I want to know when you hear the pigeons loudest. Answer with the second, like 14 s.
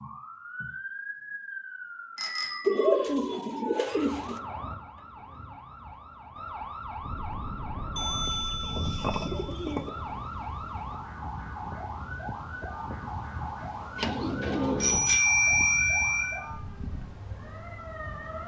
3 s.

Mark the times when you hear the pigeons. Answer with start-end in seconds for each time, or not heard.
2.6-4.4, 8.2-9.9, 13.9-15.2.